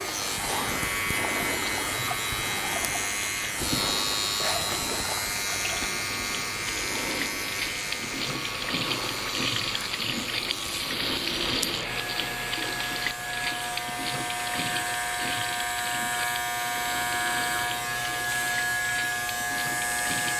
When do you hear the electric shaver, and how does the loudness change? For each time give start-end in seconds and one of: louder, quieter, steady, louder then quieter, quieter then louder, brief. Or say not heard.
0.0-20.3 quieter then louder.